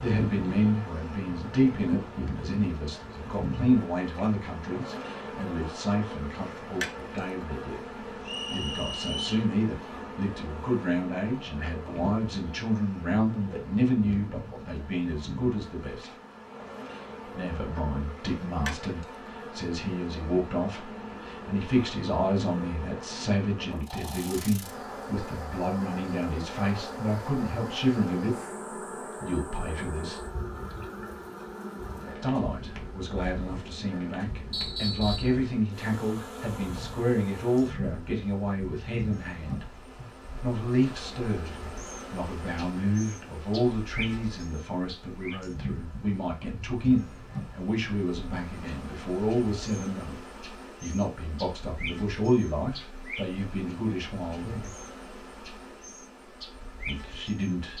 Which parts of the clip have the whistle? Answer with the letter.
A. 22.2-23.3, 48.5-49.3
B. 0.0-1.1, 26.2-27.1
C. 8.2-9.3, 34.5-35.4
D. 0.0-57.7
C.